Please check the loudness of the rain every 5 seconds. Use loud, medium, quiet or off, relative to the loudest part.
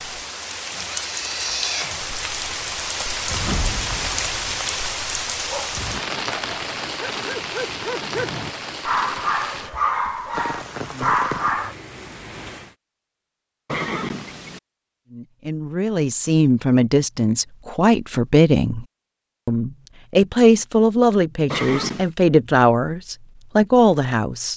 loud, loud, medium, off, off.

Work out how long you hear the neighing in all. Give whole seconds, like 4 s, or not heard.
3 s.